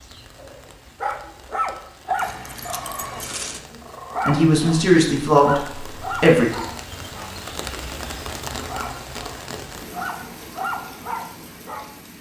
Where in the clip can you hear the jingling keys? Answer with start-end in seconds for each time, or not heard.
2.1-3.6.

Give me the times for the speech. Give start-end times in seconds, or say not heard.
4.2-6.5.